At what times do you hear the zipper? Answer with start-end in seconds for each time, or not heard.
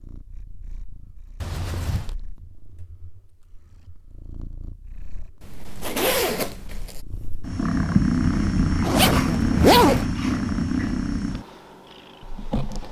1.4-2.1, 5.4-7.0, 8.8-10.1.